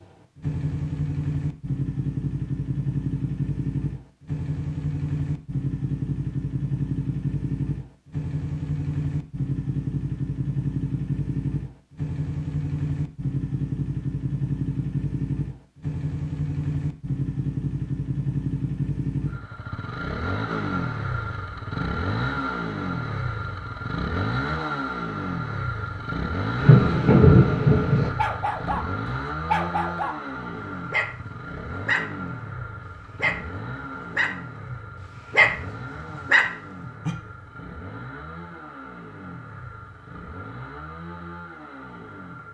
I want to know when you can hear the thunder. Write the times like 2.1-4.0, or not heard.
26.6-28.1.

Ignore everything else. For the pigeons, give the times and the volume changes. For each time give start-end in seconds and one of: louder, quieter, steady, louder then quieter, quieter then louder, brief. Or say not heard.
not heard.